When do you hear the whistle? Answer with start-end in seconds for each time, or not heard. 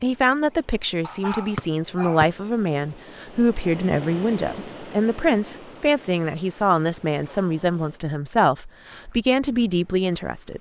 1.6-2.2.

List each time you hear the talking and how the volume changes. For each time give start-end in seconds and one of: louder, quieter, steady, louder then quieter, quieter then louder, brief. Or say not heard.
0.0-10.5 steady.